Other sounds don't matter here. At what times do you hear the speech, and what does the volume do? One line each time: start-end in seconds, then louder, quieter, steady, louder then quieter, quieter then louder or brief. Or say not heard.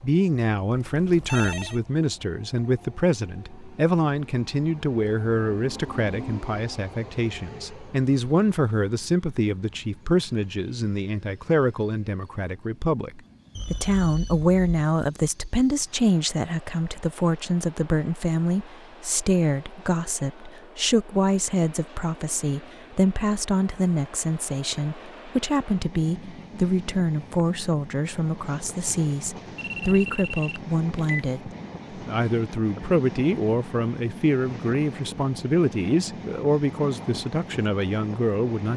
0.0-38.7 steady.